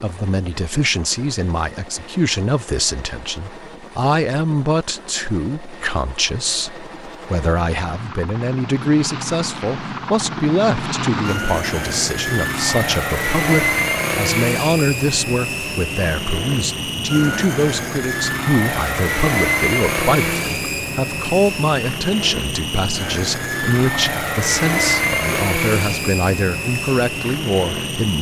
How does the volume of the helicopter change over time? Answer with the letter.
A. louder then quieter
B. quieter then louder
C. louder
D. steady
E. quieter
C.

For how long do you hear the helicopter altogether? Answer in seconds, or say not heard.
28 s.